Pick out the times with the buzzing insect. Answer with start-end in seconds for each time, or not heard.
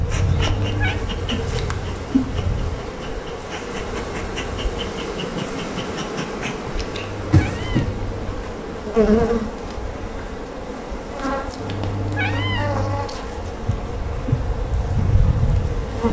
0.0-16.0.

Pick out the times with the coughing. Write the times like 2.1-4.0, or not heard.
not heard.